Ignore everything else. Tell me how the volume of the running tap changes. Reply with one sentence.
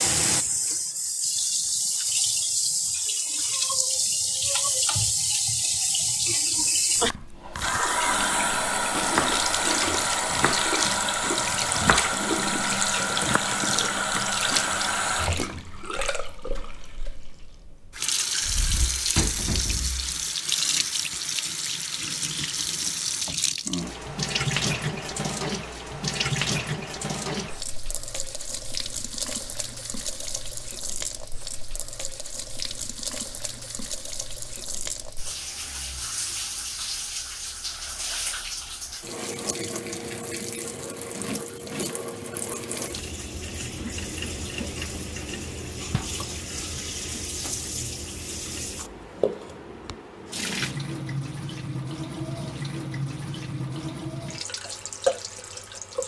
The loudness of the running tap goes down.